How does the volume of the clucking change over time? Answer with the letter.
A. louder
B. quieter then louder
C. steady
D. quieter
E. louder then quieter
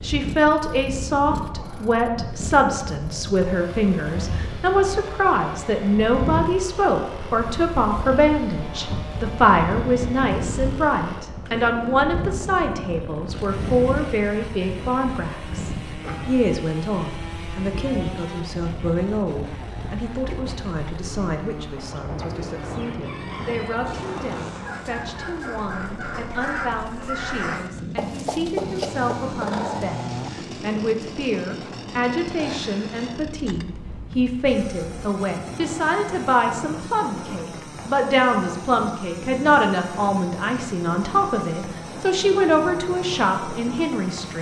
A.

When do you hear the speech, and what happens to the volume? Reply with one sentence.
The speech can be heard from 0.0 to 44.3 s, getting quieter then louder.